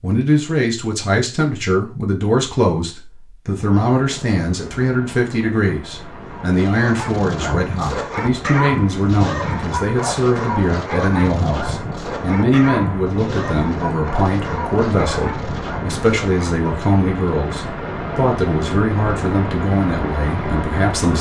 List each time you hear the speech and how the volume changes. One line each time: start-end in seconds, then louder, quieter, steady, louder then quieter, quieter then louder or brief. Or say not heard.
0.0-21.1 steady.